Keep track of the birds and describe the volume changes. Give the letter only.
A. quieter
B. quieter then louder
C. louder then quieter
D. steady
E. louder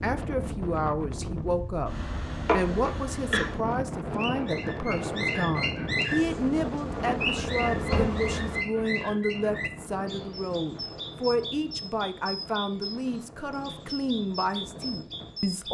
A.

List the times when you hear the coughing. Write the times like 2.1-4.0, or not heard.
2.5-3.5.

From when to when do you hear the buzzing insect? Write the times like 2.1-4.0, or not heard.
6.1-8.7.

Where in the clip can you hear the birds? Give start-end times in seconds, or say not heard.
4.2-15.6.